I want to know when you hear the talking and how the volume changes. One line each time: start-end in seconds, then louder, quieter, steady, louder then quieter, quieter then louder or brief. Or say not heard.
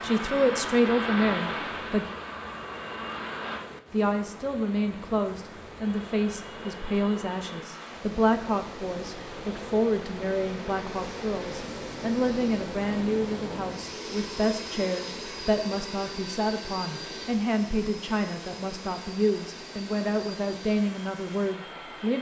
0.0-2.0 brief
3.9-22.1 steady.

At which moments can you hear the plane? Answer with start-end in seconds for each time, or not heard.
0.0-3.6, 5.8-22.1.